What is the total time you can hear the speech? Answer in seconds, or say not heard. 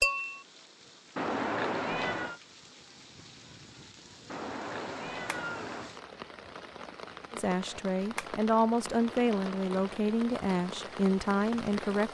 5 s.